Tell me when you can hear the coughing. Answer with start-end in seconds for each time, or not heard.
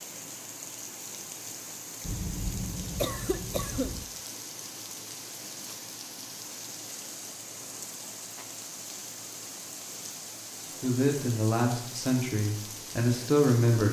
2.0-4.0.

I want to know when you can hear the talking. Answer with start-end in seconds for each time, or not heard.
10.8-13.8.